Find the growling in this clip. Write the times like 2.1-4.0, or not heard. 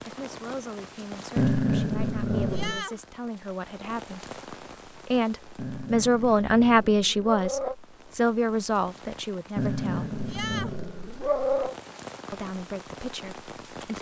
1.4-2.9, 5.5-7.8, 9.6-11.8.